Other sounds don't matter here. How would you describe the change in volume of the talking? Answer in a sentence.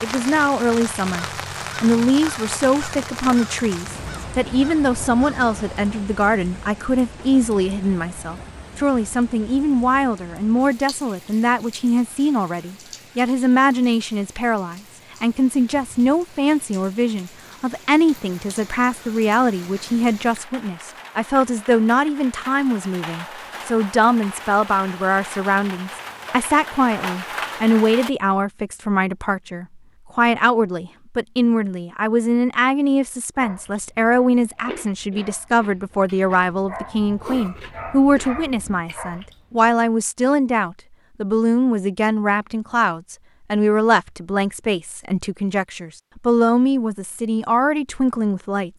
The loudness of the talking stays about the same.